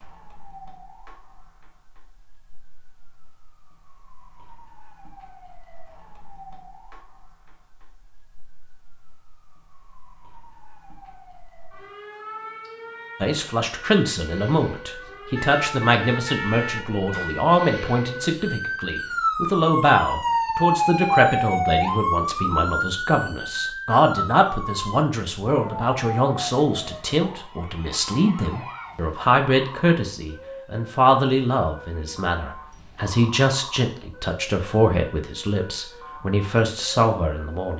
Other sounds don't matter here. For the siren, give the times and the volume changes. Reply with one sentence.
The siren can be heard from 0.0 to 37.7 s, getting louder then quieter.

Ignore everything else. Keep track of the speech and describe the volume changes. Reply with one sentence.
The volume of the speech stays about the same.